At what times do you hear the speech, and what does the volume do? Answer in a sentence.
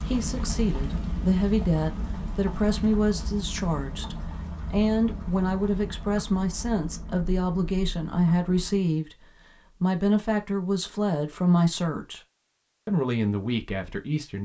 The speech can be heard from 0.0 to 12.2 s, at a steady volume; and briefly from 12.8 to 14.4 s.